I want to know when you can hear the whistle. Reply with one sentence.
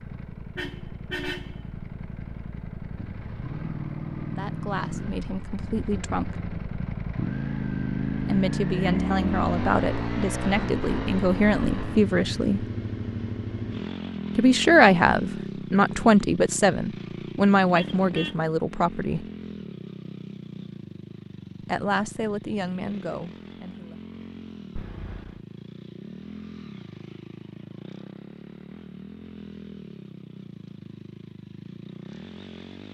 The whistle can't be heard in this clip.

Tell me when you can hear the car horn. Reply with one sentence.
The car horn can be heard from 0.6 to 1.6 s, from 17.7 to 18.4 s and from 24.8 to 25.4 s.